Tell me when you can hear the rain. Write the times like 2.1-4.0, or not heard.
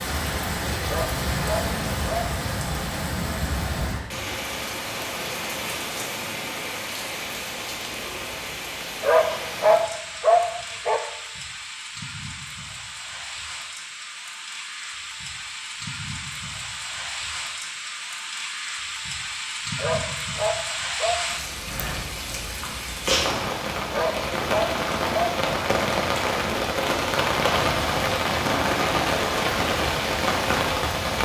0.0-31.2.